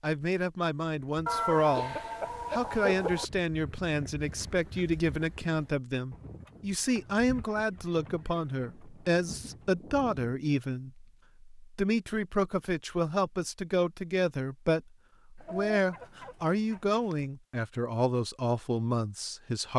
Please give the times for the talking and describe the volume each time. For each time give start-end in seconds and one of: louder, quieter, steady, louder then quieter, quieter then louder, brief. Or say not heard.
0.0-19.7 steady.